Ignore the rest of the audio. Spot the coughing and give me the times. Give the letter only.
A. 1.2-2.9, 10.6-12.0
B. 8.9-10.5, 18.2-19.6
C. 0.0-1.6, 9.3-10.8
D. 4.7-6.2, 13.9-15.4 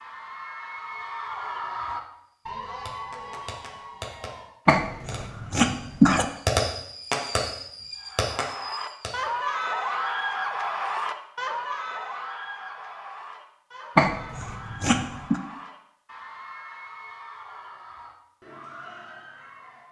D.